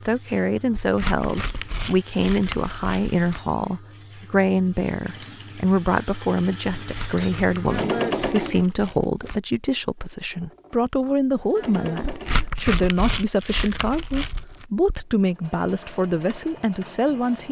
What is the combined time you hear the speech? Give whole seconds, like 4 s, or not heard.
17 s.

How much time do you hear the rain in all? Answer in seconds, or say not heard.
not heard.